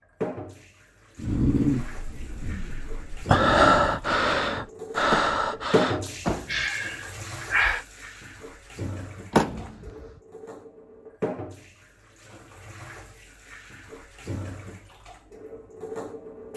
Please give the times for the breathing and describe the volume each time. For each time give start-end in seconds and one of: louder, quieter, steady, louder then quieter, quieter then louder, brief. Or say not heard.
1.1-7.8 louder then quieter.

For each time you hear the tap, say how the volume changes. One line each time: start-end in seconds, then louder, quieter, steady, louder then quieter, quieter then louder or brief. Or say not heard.
0.2-16.5 louder then quieter.